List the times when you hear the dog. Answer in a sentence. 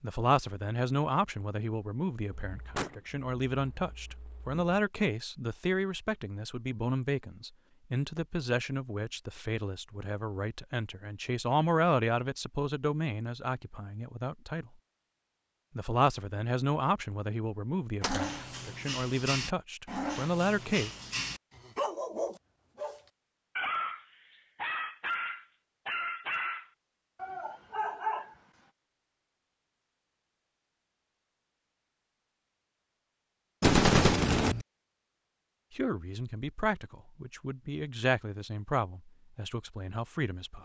You can hear the dog from 18.0 to 28.4 s.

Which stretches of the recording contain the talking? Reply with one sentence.
You can hear the talking from 0.0 to 14.7 s, from 15.8 to 20.9 s and from 35.7 to 40.5 s.